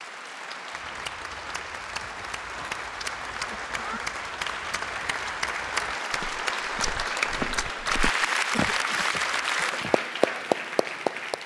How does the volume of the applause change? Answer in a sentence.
The volume of the applause goes up.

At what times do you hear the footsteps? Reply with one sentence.
The footsteps can be heard from 0.7 to 10.0 s.